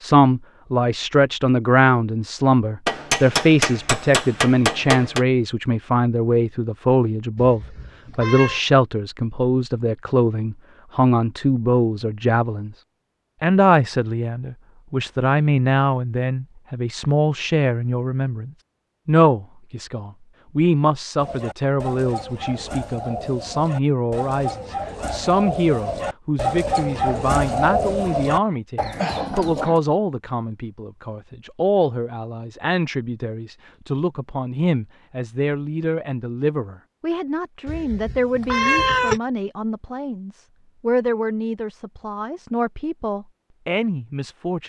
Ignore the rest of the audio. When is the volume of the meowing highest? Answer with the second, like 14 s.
39 s.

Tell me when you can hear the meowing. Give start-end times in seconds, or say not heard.
7.3-8.6, 37.6-39.2.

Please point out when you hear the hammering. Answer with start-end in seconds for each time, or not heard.
2.9-5.2.